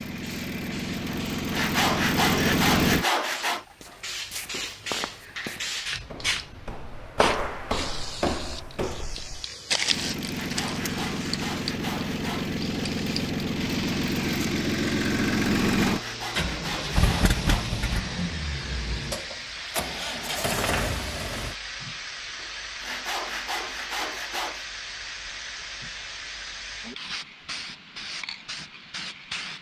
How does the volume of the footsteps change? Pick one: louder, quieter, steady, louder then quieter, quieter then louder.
louder.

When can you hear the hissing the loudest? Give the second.
6 s.